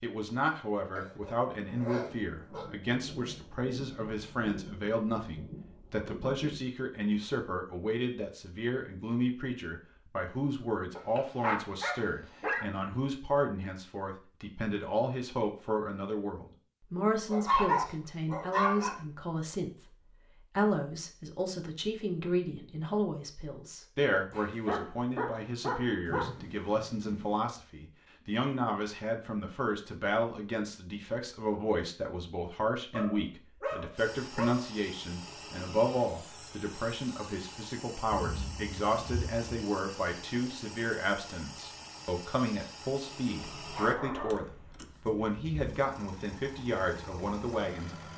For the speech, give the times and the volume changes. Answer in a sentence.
The speech can be heard from 0.0 to 48.0 s, at a steady volume.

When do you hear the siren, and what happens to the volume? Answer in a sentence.
You can't hear the siren here.